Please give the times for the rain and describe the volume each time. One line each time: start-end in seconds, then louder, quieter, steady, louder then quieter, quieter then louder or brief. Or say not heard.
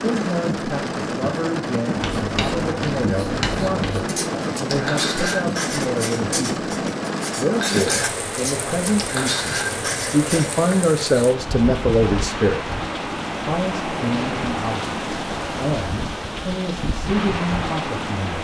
0.0-18.4 steady.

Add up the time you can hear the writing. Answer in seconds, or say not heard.
9 s.